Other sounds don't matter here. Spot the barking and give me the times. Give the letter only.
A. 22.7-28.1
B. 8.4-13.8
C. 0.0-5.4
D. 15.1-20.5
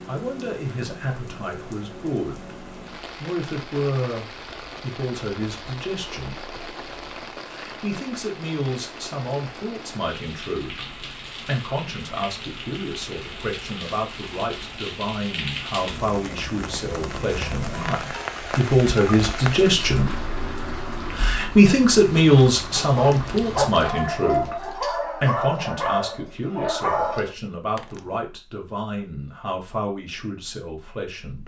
A.